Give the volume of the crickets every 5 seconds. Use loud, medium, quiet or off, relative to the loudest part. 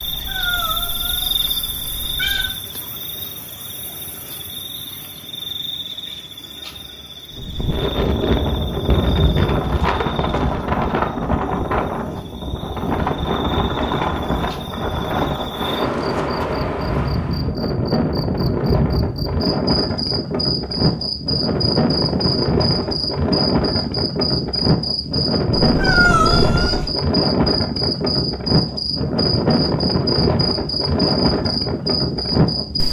loud, medium, quiet, loud, loud, loud, loud.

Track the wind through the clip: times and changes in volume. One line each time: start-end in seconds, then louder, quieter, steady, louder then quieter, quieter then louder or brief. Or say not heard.
7.3-32.8 steady.